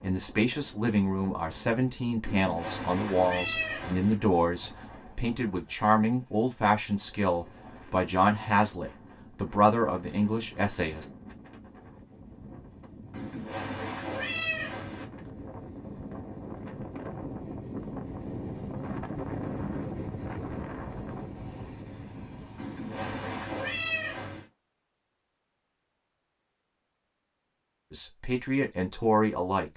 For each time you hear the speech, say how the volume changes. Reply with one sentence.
The speech can be heard from 0.0 to 11.1 s, at a steady volume; and briefly from 27.9 to 29.7 s.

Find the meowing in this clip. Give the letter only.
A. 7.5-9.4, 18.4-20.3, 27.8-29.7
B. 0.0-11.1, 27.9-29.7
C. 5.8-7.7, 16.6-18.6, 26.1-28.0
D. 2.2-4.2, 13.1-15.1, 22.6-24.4
D.